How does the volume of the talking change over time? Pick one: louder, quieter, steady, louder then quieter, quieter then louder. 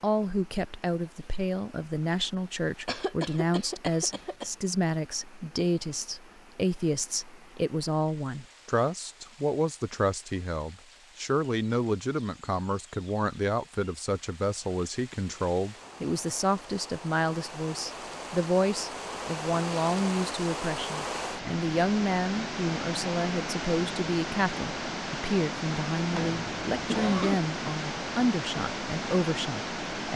steady.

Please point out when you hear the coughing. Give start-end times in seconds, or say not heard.
2.9-4.5, 26.1-27.4.